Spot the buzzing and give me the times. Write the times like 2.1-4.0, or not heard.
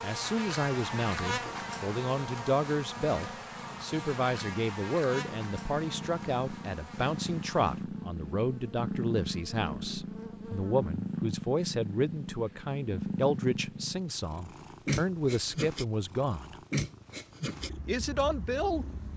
0.0-10.9.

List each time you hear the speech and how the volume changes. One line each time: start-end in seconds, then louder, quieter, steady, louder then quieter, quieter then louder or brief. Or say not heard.
0.0-16.6 steady
17.9-18.9 brief.